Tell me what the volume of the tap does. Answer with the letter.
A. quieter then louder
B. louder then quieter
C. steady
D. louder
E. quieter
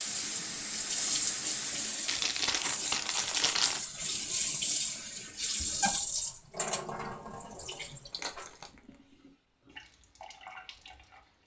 E.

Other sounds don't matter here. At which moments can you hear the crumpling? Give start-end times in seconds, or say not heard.
2.0-3.8, 8.1-8.8.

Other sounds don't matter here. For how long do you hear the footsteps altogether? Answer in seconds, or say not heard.
not heard.